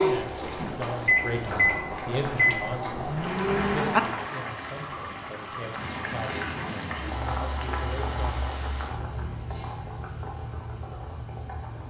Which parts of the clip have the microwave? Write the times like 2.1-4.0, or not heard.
0.0-4.2.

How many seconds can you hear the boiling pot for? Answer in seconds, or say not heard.
12 s.